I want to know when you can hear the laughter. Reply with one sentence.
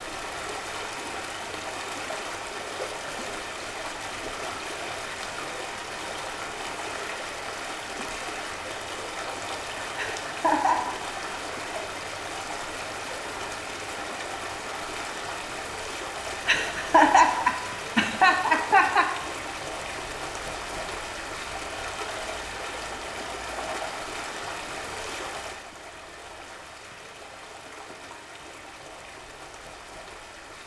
You can hear the laughter from 9.9 to 10.8 s and from 16.4 to 19.1 s.